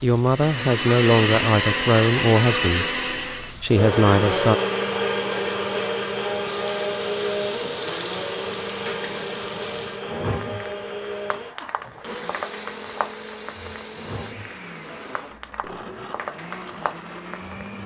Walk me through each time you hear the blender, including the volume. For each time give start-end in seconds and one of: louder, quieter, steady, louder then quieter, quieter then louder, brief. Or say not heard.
0.1-17.8 quieter.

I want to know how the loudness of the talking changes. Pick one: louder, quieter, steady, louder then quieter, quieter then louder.
quieter then louder.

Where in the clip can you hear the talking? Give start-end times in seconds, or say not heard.
0.0-4.5.